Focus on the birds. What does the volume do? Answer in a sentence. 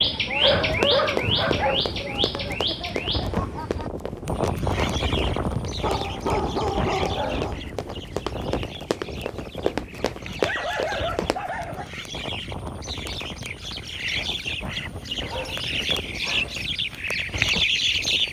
The loudness of the birds goes down, then up.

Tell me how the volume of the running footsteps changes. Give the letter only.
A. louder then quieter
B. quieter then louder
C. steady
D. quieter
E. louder
B.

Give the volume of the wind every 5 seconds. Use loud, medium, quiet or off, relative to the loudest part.
loud, loud, medium, medium.